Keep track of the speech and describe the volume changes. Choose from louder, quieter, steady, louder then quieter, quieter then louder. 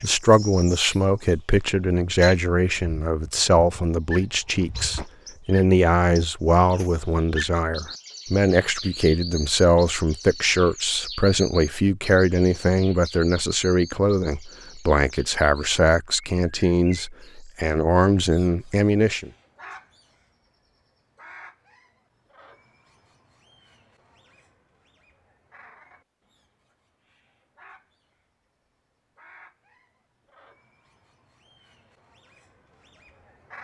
steady.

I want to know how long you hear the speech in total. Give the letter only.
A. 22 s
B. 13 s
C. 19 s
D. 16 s
C.